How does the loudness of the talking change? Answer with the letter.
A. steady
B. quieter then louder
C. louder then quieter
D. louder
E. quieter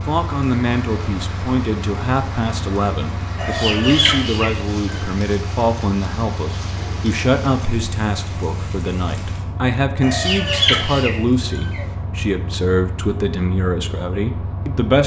A.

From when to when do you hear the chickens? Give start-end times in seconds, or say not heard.
3.4-5.0, 10.0-11.8.